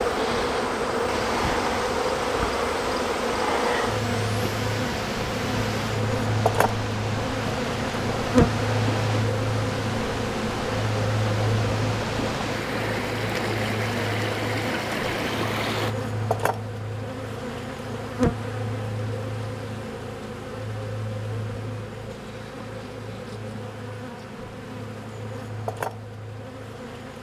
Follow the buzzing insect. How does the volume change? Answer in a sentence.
The volume of the buzzing insect goes down.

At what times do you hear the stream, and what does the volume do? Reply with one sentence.
The stream can be heard from 0.0 to 15.9 s, at a steady volume.